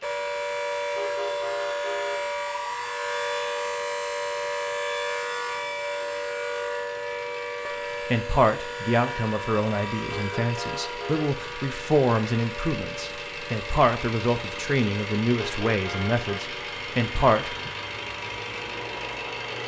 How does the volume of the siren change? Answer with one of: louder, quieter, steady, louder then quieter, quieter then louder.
quieter.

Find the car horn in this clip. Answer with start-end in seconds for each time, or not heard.
0.9-2.3, 10.1-11.3, 15.3-16.2.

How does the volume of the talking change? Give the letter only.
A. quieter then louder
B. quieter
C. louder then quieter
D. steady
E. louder
D.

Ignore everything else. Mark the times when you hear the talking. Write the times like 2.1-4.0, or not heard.
8.1-17.7.